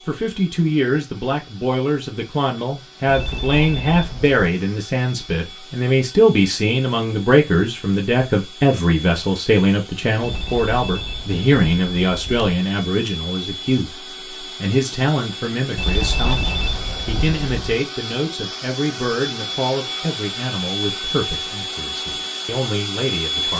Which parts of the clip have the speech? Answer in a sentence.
You can hear the speech from 0.1 to 23.5 s.